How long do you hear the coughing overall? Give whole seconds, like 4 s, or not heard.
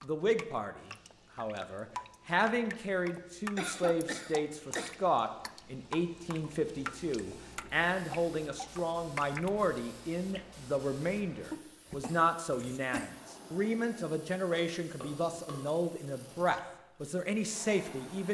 3 s.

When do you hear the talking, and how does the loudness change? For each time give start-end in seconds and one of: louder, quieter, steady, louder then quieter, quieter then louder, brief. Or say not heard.
0.0-18.2 steady.